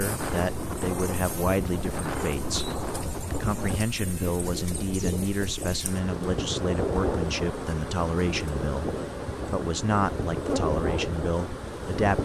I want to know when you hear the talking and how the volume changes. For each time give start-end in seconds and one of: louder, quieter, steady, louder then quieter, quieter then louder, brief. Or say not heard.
0.0-12.2 steady.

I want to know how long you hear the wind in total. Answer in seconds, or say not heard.
12 s.